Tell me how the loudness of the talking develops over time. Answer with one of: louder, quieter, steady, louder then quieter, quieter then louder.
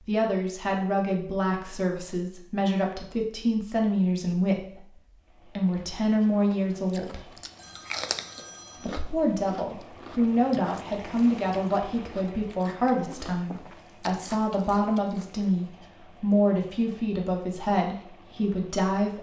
steady.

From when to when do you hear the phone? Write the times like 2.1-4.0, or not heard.
7.5-9.1.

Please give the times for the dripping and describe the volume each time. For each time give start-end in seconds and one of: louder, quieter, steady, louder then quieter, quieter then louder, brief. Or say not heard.
not heard.